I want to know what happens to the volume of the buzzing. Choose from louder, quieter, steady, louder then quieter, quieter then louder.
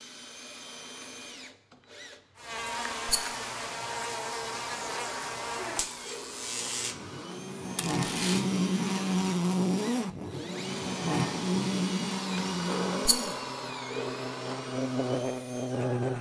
louder then quieter.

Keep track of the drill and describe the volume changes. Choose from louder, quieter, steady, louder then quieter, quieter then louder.
louder.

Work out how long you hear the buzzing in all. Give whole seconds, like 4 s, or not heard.
14 s.